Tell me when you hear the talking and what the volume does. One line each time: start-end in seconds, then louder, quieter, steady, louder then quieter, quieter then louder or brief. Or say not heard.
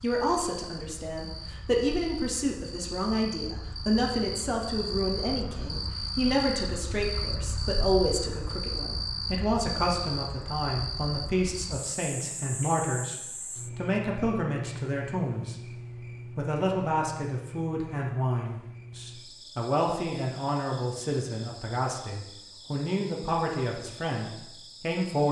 0.0-25.2 steady.